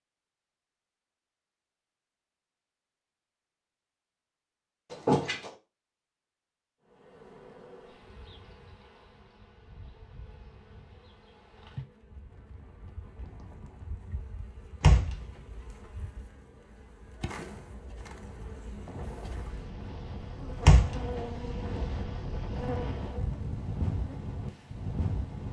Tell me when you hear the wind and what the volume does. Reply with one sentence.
The wind can be heard from 12.1 to 25.4 s, getting quieter then louder.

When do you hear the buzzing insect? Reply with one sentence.
You can hear the buzzing insect from 6.8 to 24.2 s.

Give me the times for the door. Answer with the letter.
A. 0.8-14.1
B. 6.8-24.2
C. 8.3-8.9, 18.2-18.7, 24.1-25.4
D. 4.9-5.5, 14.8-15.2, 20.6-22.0
D.